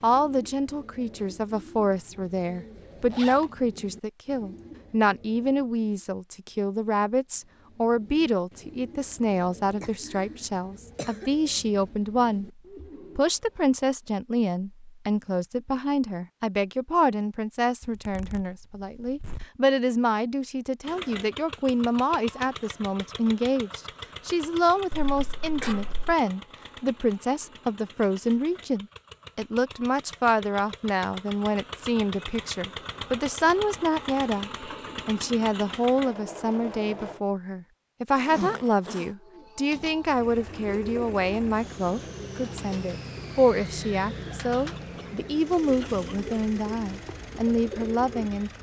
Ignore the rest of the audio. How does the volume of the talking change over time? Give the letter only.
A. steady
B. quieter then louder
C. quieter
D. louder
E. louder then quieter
A.